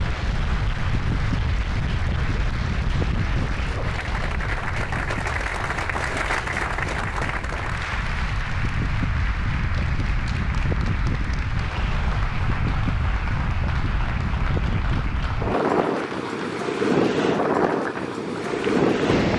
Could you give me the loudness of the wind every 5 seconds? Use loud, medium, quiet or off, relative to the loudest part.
medium, medium, medium, loud.